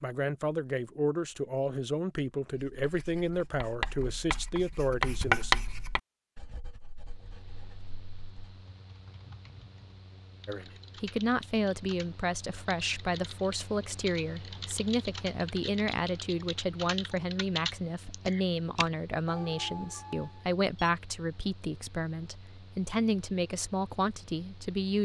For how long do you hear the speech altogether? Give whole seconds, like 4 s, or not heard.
20 s.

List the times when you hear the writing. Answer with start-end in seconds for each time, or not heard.
2.5-8.6.